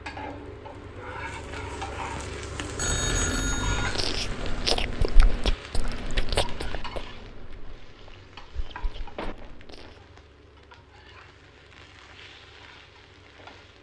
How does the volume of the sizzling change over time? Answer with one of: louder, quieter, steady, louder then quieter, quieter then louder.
quieter.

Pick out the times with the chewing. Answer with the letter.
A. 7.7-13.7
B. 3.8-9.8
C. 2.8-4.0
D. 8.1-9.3
B.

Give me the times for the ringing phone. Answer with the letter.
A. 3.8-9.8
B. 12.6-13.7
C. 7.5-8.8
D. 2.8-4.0
D.